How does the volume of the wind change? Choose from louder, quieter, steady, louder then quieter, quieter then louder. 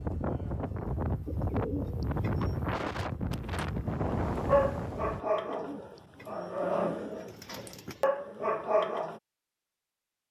steady.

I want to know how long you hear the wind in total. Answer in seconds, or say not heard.
5 s.